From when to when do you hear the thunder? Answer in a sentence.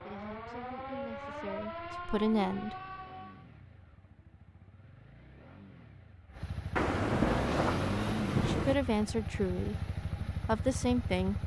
The thunder can be heard from 6.8 to 8.8 s.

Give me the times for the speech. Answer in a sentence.
You can hear the speech from 0.0 to 2.8 s and from 8.4 to 11.4 s.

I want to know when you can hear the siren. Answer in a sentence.
The siren can be heard from 0.0 to 3.5 s.